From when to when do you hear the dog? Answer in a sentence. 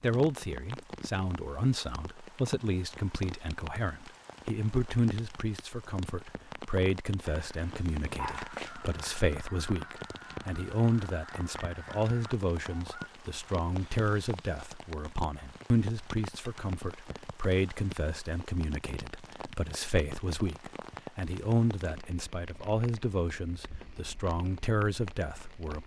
You can hear the dog from 7.2 to 8.8 s.